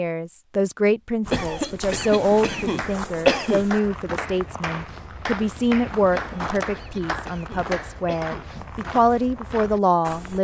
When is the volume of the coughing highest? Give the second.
3 s.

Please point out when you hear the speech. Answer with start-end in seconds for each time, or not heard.
0.0-10.3.